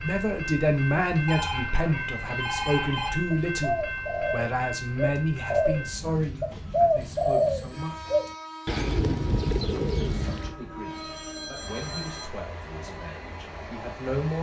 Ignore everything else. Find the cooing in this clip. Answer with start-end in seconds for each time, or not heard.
3.5-10.6.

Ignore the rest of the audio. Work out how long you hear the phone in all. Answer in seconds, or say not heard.
5 s.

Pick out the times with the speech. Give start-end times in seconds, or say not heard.
0.0-8.1, 10.1-14.3.